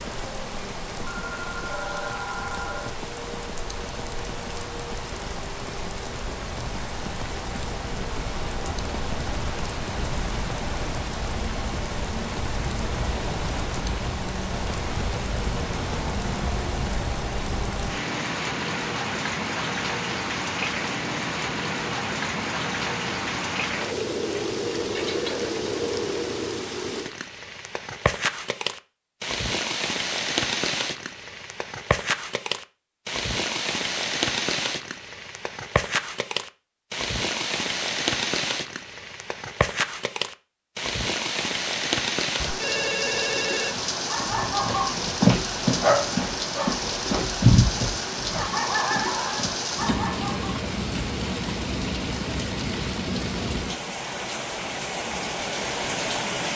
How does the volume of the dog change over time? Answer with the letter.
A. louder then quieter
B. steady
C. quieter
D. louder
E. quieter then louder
C.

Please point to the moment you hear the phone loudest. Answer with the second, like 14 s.
43 s.